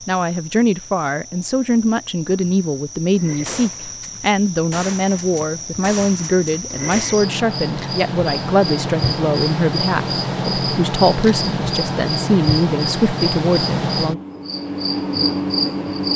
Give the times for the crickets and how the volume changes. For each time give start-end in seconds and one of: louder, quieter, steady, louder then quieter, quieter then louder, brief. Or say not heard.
0.0-16.1 louder.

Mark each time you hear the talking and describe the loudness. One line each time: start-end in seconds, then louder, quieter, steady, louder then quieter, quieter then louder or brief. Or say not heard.
0.1-14.2 steady.